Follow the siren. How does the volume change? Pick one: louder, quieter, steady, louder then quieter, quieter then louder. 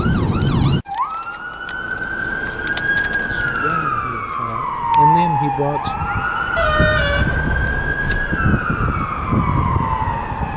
steady.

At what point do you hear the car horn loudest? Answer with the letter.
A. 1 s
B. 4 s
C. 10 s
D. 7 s
D.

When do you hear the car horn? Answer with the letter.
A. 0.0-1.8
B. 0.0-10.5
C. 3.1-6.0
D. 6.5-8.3
D.